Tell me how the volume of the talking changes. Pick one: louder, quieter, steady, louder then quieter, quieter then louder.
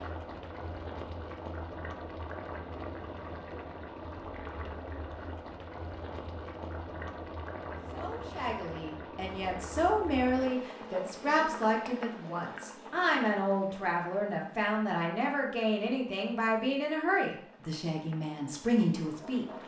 steady.